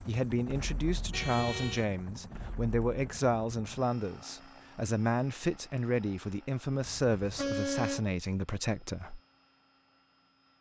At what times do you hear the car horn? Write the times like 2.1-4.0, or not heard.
1.1-1.9, 6.8-8.1.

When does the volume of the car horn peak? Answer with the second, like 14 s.
8 s.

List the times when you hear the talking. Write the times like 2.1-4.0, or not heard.
0.1-9.2.